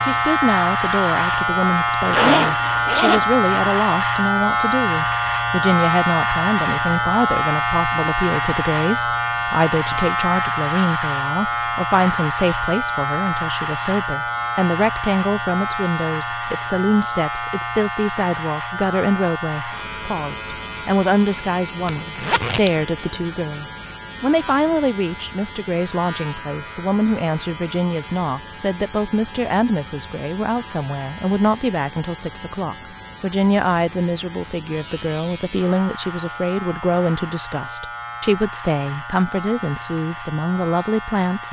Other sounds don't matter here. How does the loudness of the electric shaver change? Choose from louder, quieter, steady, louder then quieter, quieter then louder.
quieter.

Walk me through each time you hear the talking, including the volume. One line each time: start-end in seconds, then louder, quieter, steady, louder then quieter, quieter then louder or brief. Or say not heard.
0.0-41.4 steady.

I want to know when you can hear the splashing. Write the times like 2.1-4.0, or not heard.
not heard.